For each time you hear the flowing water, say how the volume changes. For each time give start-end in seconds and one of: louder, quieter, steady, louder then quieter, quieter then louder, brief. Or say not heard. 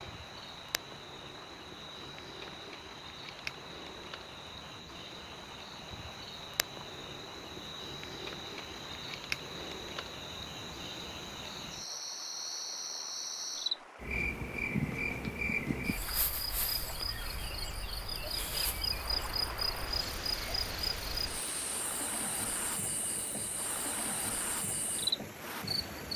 0.0-26.1 louder.